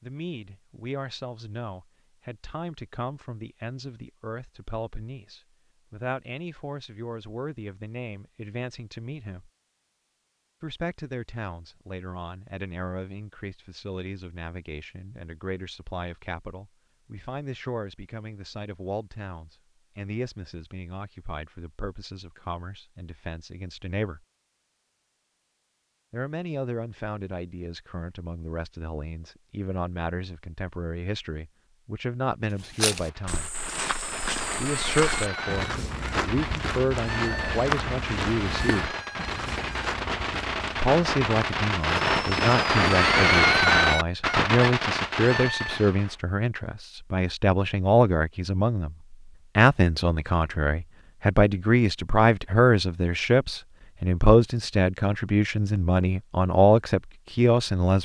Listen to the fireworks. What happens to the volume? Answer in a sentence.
The volume of the fireworks goes up.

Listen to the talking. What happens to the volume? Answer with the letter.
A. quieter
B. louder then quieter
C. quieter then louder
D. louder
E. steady
D.